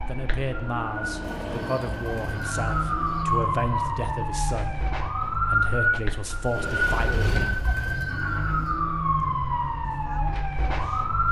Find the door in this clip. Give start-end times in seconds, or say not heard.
6.5-7.8.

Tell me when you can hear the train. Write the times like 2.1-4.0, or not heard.
0.0-3.6.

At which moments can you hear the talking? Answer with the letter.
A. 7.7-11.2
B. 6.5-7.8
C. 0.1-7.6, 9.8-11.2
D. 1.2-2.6
C.